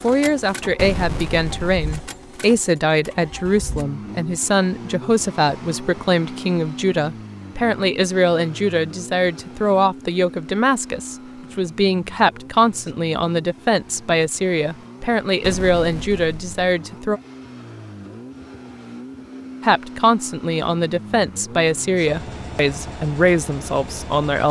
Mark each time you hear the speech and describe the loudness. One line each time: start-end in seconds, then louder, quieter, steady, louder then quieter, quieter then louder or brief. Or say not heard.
0.0-17.2 steady
19.6-24.4 steady.